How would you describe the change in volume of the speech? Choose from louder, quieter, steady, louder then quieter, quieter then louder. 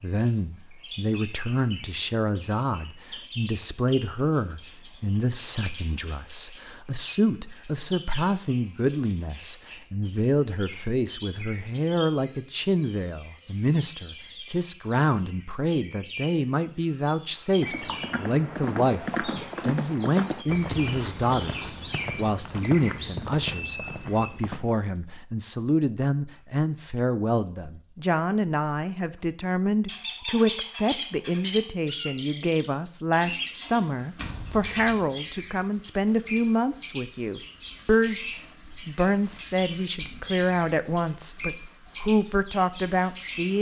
steady.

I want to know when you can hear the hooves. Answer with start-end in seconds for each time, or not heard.
17.6-24.8.